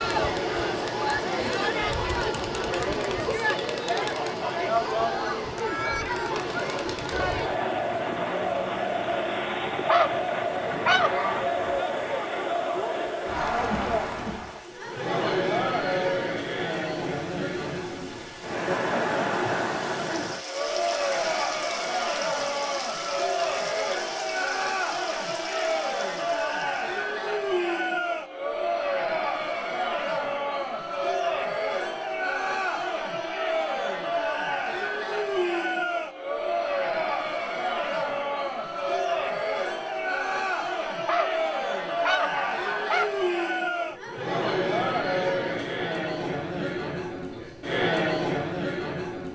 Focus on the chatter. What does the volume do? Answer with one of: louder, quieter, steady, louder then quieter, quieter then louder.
steady.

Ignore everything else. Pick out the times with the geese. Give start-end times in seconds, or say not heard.
9.8-11.4, 41.0-43.0.